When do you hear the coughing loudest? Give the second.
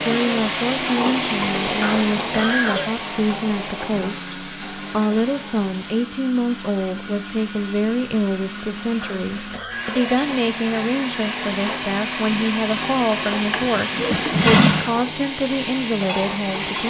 3 s.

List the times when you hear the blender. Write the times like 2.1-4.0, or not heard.
0.0-14.4.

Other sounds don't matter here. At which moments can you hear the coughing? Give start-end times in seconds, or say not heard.
1.8-3.0, 9.0-10.2.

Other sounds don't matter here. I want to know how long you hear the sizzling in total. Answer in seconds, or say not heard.
13 s.